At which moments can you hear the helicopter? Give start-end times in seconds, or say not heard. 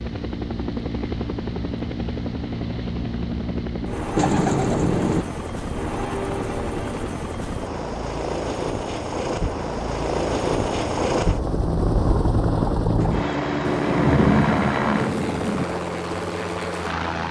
0.0-17.2.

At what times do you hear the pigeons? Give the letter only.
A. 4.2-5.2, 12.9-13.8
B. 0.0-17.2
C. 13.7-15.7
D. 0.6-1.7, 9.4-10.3
A.